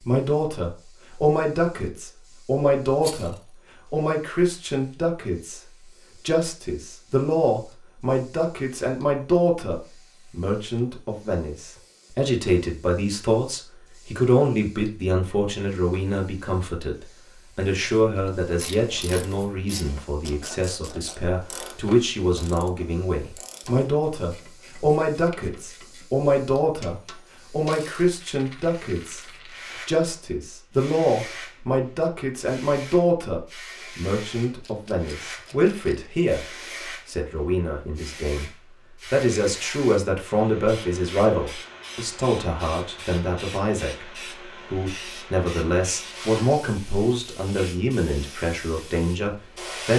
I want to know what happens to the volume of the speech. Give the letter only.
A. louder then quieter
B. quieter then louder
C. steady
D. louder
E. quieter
C.